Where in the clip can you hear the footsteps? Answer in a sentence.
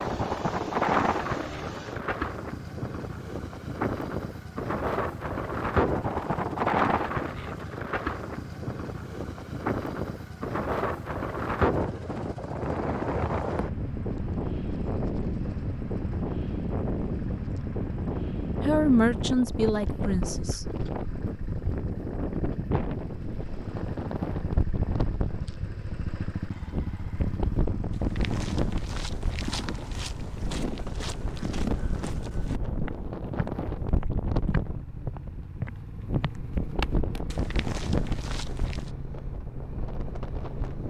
The footsteps can be heard from 28.0 to 38.9 s.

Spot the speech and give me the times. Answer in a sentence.
The speech can be heard from 18.6 to 20.6 s.